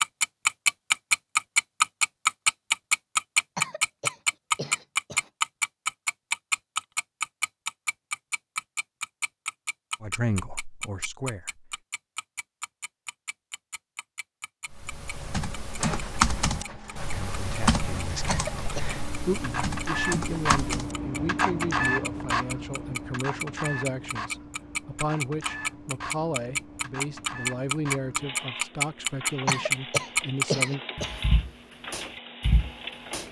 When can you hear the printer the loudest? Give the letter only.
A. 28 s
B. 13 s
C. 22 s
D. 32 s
C.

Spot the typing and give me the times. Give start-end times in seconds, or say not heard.
14.7-20.9.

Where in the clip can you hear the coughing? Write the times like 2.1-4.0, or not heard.
3.5-5.3, 18.2-18.9, 29.4-31.2.